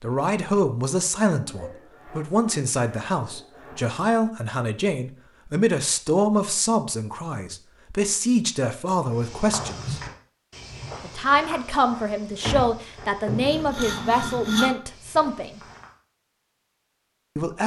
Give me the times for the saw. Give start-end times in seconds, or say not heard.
1.4-4.0, 13.2-14.8.